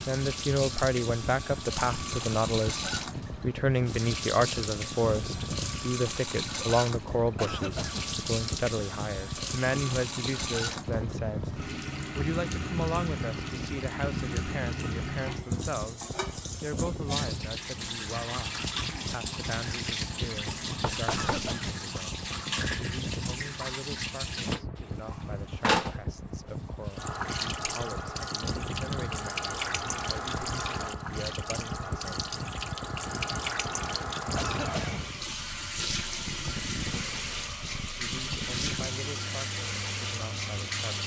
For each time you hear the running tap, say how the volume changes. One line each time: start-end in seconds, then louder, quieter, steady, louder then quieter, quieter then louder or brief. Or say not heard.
0.0-41.0 steady.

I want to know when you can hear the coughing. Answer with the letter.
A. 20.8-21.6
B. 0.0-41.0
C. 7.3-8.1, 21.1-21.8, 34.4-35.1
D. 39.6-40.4
C.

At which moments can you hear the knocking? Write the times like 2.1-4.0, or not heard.
20.8-21.6.